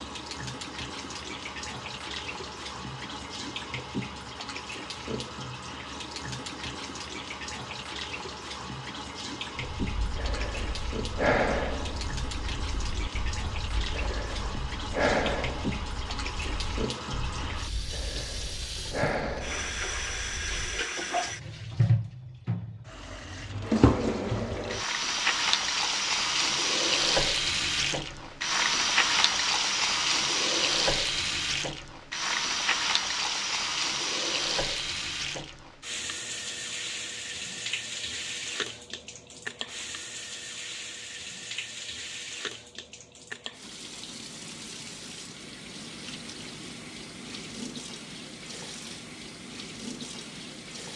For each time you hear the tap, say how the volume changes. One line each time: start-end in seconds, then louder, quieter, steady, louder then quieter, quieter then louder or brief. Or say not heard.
0.0-50.9 louder then quieter.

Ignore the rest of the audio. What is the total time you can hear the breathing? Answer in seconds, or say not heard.
11 s.